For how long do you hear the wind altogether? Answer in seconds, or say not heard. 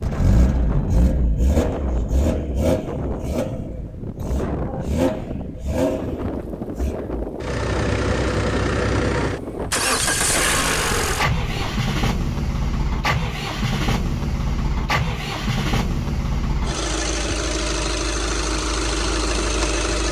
12 s.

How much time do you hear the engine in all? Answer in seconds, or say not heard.
20 s.